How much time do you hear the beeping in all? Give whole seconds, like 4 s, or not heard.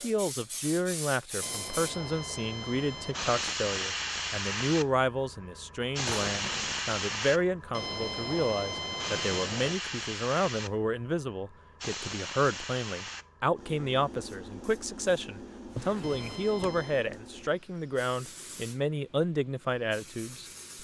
5 s.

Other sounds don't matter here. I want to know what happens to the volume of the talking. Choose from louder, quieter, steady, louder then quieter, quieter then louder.
steady.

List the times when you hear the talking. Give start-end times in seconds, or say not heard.
0.0-20.4.